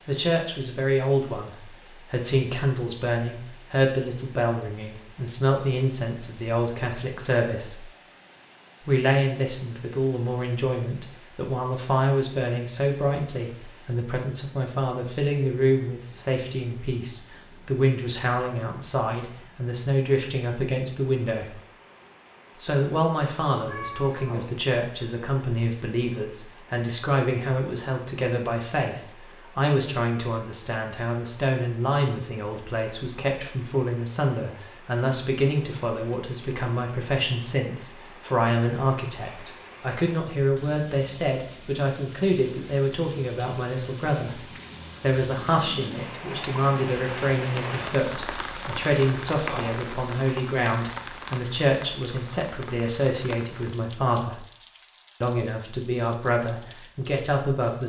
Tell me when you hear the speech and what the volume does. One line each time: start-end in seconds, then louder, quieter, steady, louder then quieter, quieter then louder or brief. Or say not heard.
0.1-7.8 steady
8.8-21.6 steady
22.6-54.4 steady
55.2-57.8 brief.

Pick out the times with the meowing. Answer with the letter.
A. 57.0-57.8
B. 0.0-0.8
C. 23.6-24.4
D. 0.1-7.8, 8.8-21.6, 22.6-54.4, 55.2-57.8
C.